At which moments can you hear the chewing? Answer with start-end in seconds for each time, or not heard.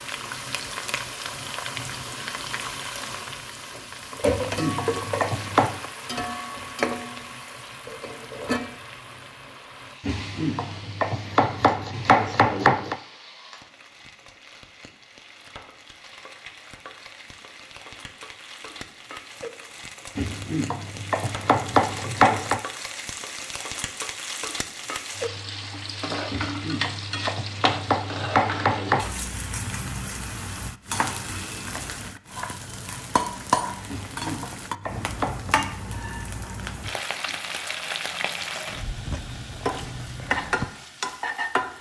not heard.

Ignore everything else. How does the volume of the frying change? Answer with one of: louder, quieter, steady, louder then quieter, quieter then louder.
quieter then louder.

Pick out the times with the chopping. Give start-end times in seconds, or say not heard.
4.2-5.8, 10.1-12.9, 20.1-22.6, 26.3-29.1, 33.9-35.5.